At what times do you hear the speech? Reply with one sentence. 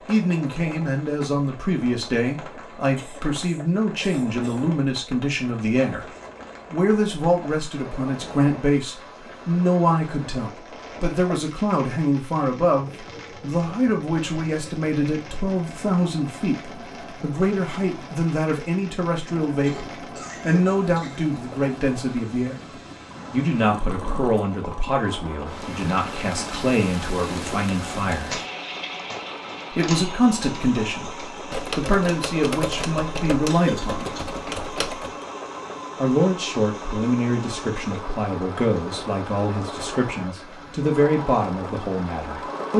You can hear the speech from 0.1 to 6.0 s, from 6.7 to 22.6 s, from 23.3 to 28.4 s, from 29.7 to 34.1 s and from 36.0 to 42.7 s.